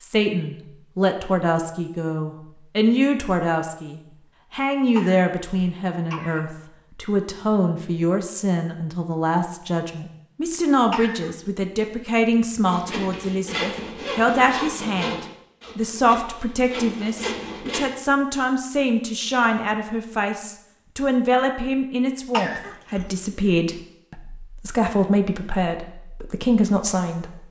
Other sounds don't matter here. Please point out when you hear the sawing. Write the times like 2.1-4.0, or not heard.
12.7-17.9.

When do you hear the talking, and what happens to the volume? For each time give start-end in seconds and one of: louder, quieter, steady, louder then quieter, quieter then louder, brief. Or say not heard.
0.0-27.4 steady.